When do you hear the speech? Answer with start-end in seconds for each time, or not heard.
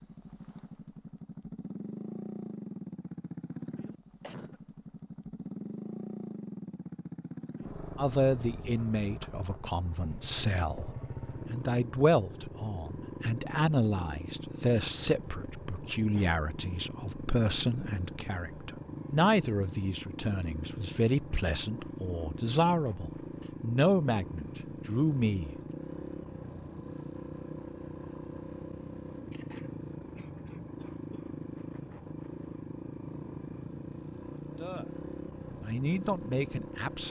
8.0-25.6, 34.5-35.0, 35.6-37.0.